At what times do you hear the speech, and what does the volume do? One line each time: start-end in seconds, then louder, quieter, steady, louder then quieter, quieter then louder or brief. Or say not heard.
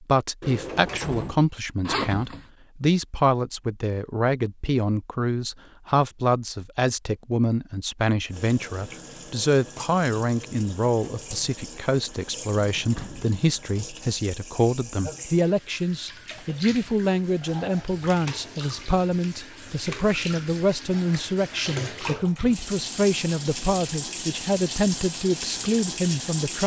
0.0-26.6 steady.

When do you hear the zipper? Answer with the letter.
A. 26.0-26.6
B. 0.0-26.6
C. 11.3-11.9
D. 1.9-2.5
D.